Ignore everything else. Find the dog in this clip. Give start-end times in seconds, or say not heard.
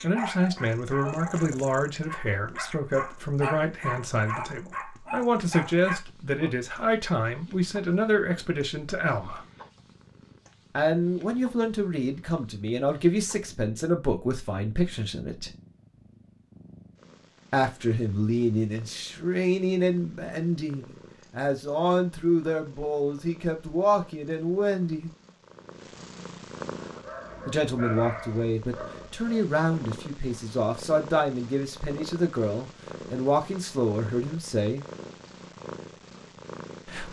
0.0-6.5, 26.7-29.2.